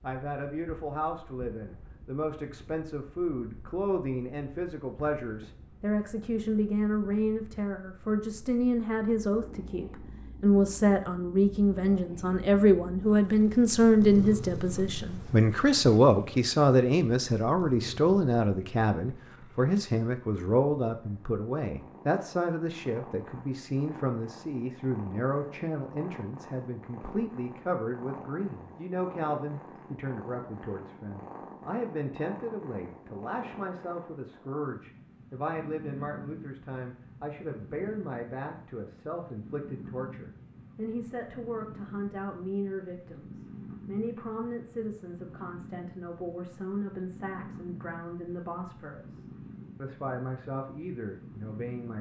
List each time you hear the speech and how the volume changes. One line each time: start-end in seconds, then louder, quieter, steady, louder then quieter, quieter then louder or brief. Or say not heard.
0.0-51.9 louder then quieter.